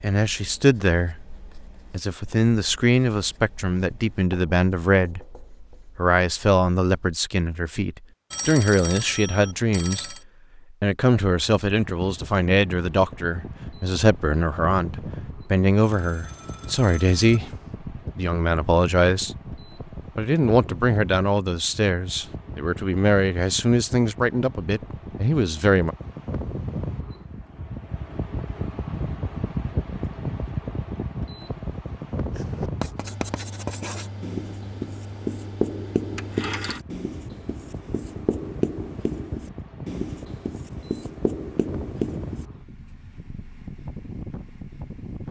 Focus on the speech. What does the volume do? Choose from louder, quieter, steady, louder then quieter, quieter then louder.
steady.